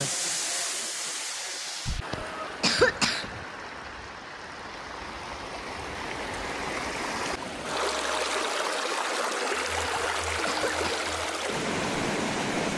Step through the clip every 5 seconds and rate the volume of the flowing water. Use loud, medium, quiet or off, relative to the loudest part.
medium, loud, loud.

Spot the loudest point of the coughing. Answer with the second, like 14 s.
3 s.